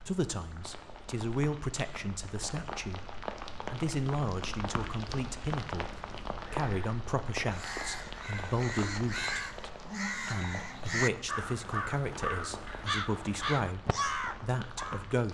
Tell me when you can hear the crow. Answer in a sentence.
The crow can be heard from 7.5 to 15.0 s.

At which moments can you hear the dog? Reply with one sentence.
You can't hear the dog here.